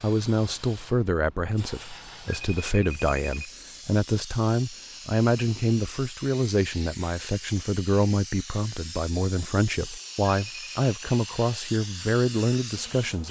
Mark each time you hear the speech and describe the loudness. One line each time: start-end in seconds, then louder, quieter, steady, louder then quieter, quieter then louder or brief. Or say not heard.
0.0-13.2 steady.